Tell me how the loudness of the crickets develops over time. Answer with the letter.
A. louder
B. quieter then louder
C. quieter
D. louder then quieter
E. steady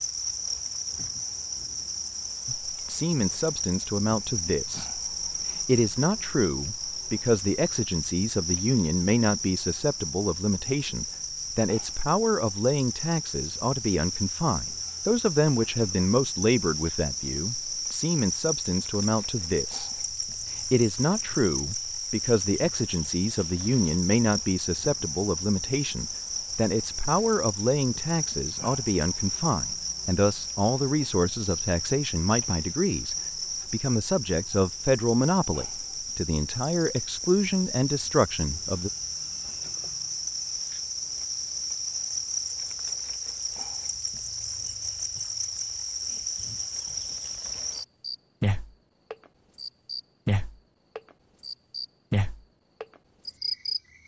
E.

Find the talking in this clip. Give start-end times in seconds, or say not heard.
2.5-5.0, 5.6-20.0, 20.6-38.9.